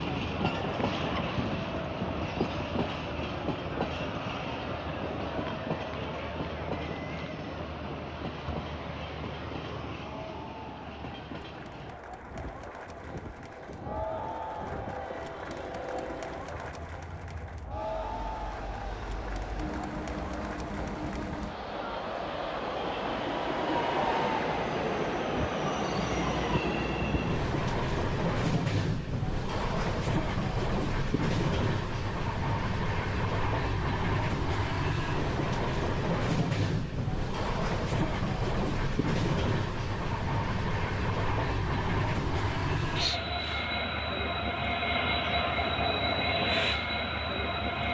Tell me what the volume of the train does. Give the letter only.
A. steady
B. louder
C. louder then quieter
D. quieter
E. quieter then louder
E.